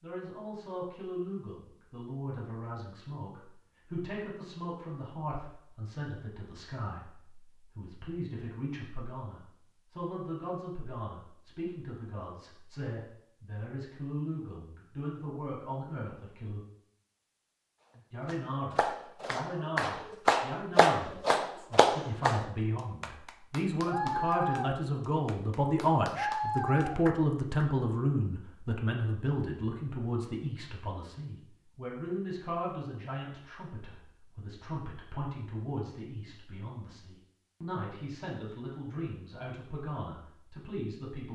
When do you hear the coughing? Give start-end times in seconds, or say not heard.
not heard.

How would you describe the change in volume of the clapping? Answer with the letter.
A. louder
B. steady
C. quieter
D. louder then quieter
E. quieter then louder
D.